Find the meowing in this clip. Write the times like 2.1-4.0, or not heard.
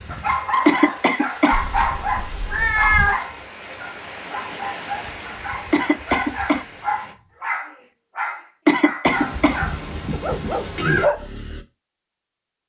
1.5-3.1, 9.1-11.1.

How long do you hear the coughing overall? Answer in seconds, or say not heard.
3 s.